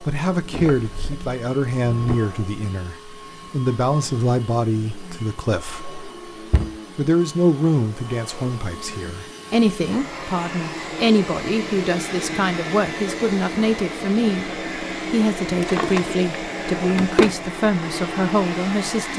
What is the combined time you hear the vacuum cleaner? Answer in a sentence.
The vacuum cleaner can be heard for 19 seconds in total.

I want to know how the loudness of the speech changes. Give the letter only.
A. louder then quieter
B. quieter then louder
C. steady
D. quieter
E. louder
C.